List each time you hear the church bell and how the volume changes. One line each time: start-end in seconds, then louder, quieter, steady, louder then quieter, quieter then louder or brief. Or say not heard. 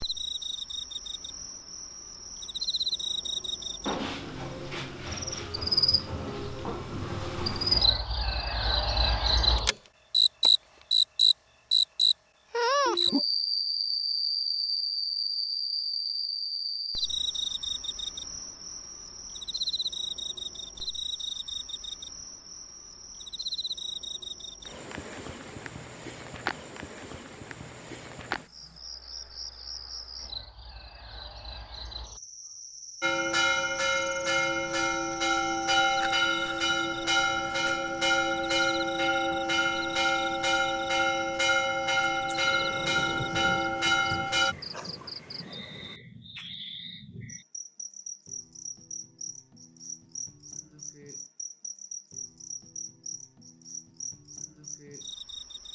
33.0-44.5 steady.